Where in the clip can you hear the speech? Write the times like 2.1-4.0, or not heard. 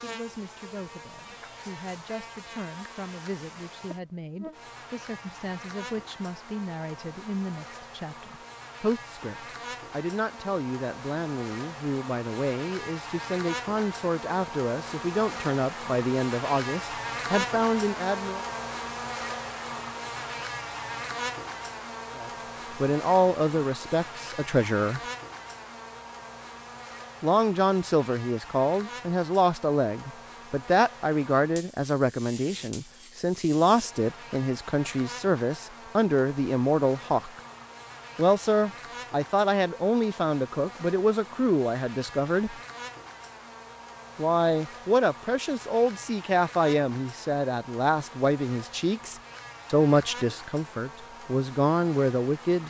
0.0-18.4, 22.1-25.0, 27.2-37.4, 38.1-42.5, 44.1-52.6.